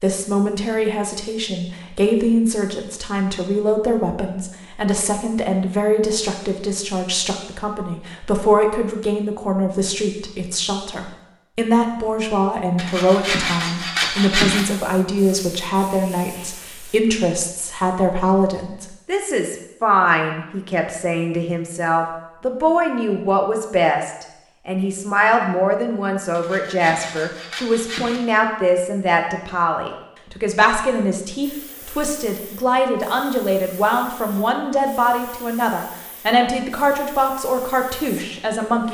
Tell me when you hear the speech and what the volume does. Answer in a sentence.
The speech can be heard from 0.0 to 38.8 s, at a steady volume.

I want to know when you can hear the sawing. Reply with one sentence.
The sawing can be heard from 12.8 to 14.7 s and from 26.3 to 28.2 s.